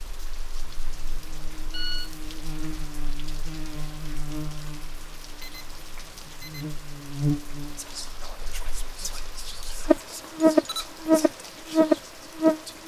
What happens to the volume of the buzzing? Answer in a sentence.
The loudness of the buzzing goes up.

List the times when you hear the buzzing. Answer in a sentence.
You can hear the buzzing from 0.2 to 12.8 s.